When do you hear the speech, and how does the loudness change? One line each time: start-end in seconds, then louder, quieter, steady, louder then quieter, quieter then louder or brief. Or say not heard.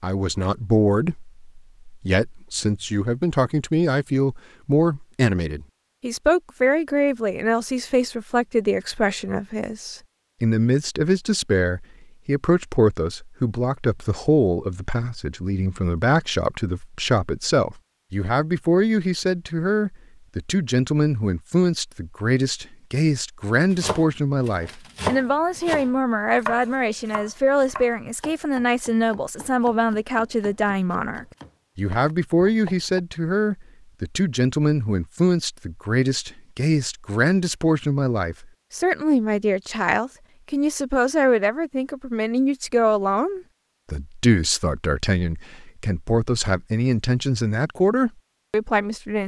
0.0-49.2 steady.